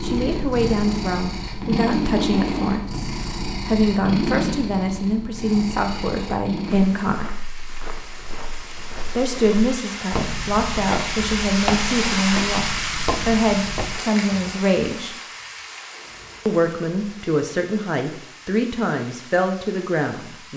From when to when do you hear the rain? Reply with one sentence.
You can hear the rain from 6.7 to 20.5 s.